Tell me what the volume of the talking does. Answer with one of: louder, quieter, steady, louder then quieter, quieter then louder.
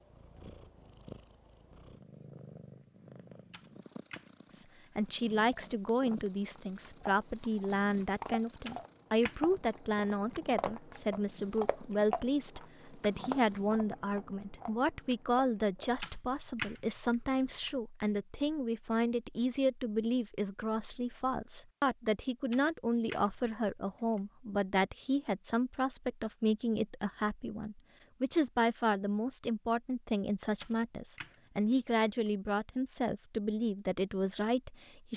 steady.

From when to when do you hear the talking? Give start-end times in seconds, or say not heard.
4.5-35.1.